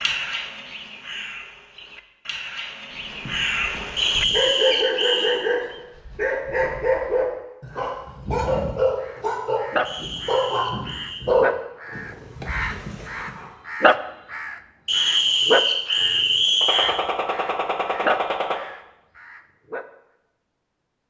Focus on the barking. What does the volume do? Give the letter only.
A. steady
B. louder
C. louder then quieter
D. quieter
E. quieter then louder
A.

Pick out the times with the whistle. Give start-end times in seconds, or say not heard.
4.0-5.4, 9.8-11.2, 14.8-16.9.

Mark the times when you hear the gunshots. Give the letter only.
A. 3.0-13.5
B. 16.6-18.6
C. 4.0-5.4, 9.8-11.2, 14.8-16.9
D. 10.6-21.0
B.